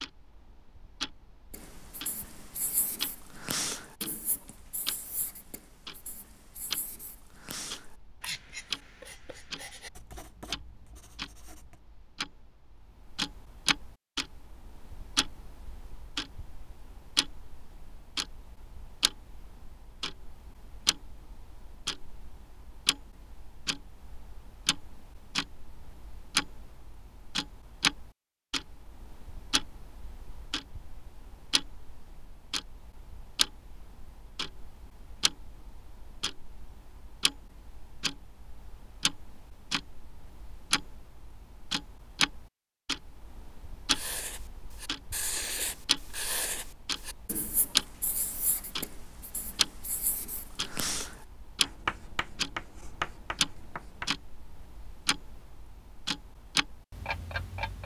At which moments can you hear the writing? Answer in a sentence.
You can hear the writing from 1.5 to 11.8 s and from 43.9 to 54.1 s.